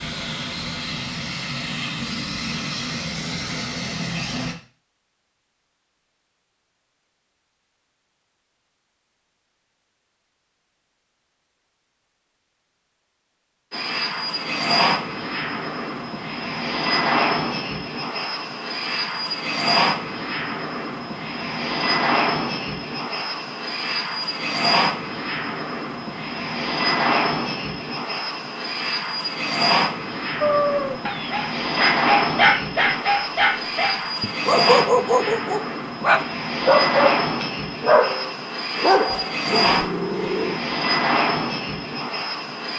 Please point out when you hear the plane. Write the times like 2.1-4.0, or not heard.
0.0-4.5, 13.7-42.7.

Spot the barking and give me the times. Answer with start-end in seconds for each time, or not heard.
30.4-40.6.